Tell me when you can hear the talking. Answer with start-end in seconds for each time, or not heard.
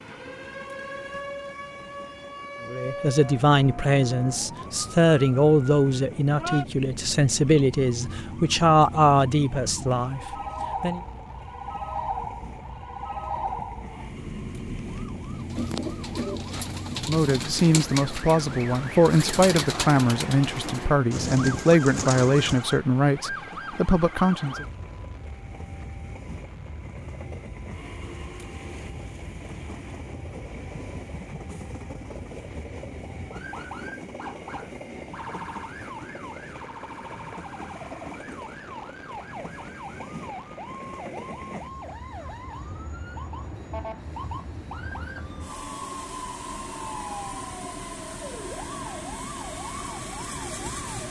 2.7-11.0, 17.1-24.6.